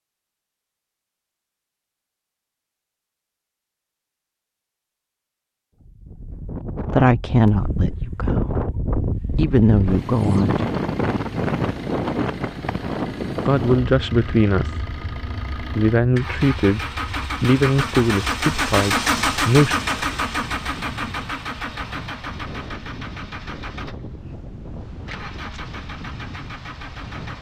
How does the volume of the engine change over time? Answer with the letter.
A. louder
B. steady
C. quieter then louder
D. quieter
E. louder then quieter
E.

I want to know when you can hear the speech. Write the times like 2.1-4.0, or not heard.
6.9-8.7, 9.3-10.7, 13.4-14.8, 15.6-19.8.